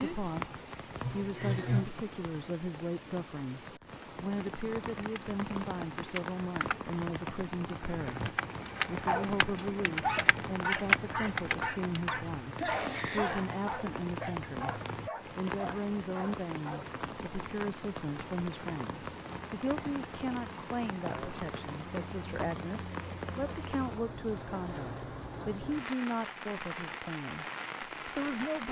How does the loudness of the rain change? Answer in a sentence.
The loudness of the rain stays about the same.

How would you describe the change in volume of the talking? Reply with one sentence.
The volume of the talking stays about the same.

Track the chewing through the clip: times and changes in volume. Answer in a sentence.
The chewing can't be heard in this clip.